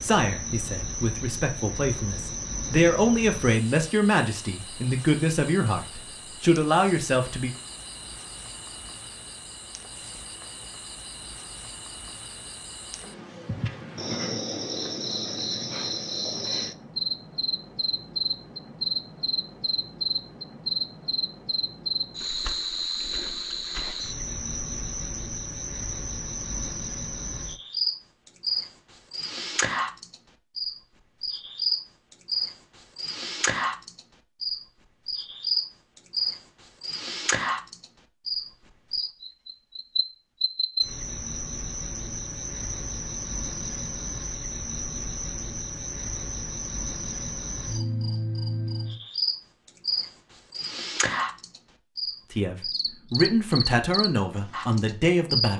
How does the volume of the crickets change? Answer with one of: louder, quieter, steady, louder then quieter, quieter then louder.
louder.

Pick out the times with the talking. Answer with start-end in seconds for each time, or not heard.
0.0-7.5, 52.3-55.5.